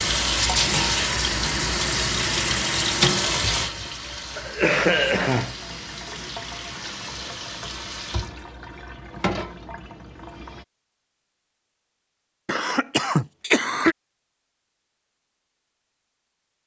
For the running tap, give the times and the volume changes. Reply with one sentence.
The running tap can be heard from 0.0 to 10.7 s, getting quieter.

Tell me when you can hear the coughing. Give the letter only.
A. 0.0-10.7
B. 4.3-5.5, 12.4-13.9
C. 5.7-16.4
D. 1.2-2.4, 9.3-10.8
B.